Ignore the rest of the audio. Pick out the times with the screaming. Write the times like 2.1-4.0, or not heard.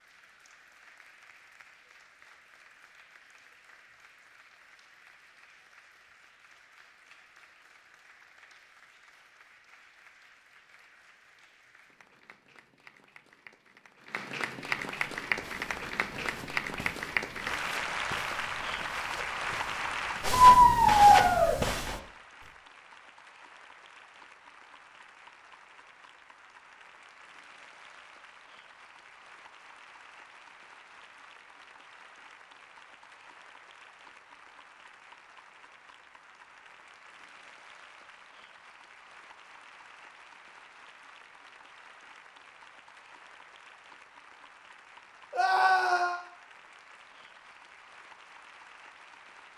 20.4-21.6, 45.3-46.2.